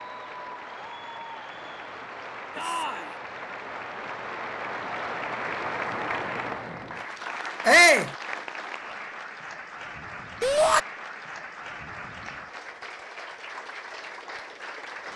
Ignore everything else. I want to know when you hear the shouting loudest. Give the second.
8 s.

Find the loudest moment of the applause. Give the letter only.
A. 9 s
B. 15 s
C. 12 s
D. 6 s
D.